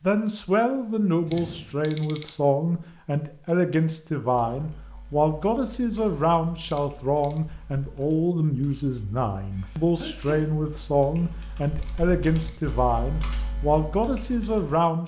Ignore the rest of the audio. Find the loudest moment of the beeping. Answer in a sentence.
The volume of the beeping peaks at 2 seconds.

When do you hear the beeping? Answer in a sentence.
The beeping can be heard from 1.2 to 2.3 s, from 6.7 to 7.4 s and from 11.8 to 12.7 s.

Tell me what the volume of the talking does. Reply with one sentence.
The volume of the talking stays about the same.